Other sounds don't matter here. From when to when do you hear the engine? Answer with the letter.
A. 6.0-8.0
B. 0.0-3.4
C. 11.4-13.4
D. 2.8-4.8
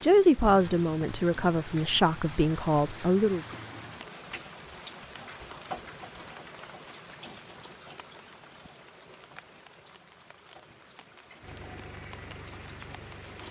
C.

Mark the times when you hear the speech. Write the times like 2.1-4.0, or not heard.
0.0-3.4.